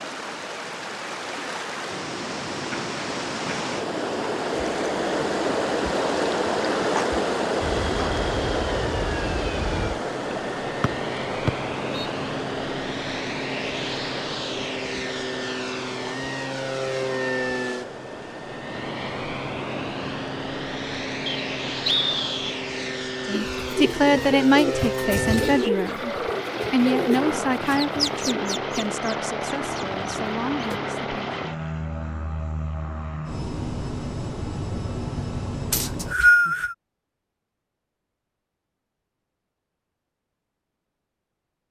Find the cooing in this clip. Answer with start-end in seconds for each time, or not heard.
23.4-30.8.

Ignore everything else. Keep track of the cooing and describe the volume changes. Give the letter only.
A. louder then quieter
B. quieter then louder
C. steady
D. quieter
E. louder
D.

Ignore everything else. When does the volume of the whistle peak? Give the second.
36 s.